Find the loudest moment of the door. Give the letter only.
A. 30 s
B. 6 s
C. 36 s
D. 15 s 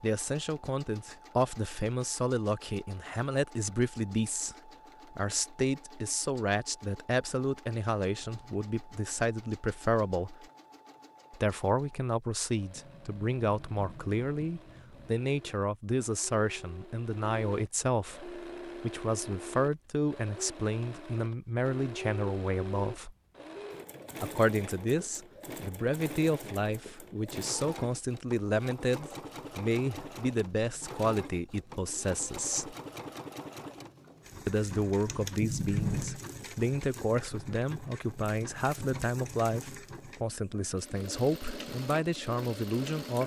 C.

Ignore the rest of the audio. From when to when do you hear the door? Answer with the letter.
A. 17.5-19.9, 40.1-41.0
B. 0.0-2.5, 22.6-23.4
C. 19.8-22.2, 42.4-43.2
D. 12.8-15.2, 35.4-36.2
D.